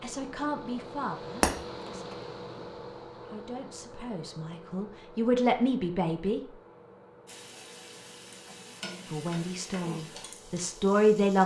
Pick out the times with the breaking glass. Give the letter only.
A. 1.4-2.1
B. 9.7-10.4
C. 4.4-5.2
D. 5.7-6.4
A.